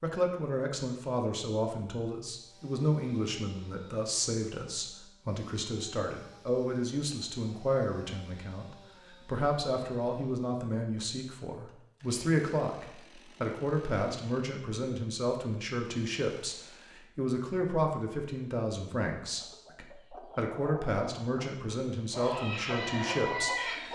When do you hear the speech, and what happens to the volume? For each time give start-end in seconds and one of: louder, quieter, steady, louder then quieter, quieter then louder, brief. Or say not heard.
0.0-23.9 steady.